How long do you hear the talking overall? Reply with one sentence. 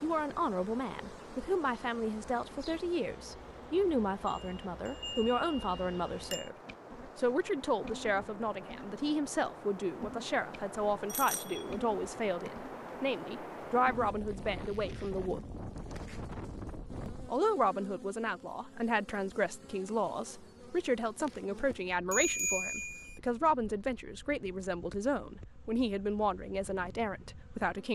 The talking can be heard for 26 seconds in total.